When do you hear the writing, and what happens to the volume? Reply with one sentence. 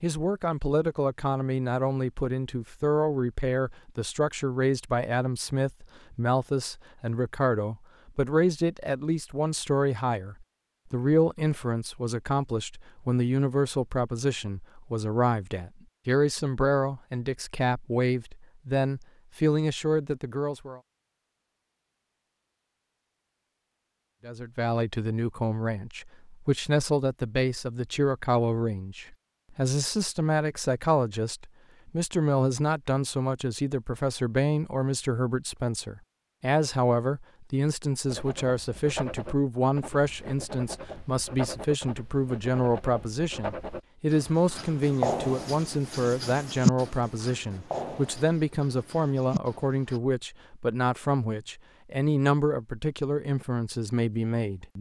The writing can be heard from 38.0 to 50.0 s, getting louder then quieter.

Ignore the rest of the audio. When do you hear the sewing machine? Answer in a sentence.
You can't hear the sewing machine here.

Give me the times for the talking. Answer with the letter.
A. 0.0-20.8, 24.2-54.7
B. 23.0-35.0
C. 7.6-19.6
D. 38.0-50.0
A.